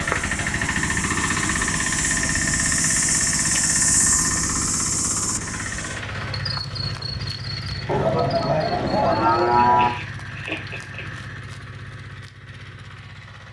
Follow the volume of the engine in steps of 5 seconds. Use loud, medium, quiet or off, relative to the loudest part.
loud, medium, quiet.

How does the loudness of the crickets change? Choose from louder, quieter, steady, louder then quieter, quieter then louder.
louder then quieter.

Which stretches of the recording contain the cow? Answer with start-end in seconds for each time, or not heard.
7.8-9.9.